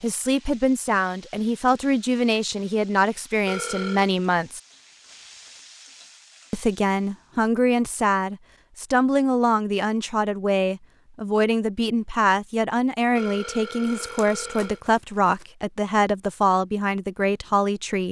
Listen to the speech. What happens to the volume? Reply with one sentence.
The loudness of the speech stays about the same.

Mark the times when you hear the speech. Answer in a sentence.
The speech can be heard from 0.0 to 4.6 s and from 6.5 to 18.0 s.